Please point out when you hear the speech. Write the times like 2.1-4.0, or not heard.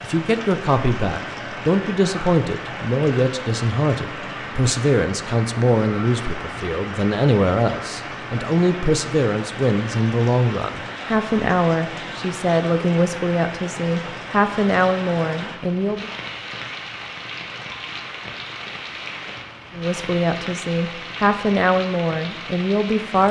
0.0-16.1, 19.8-23.2.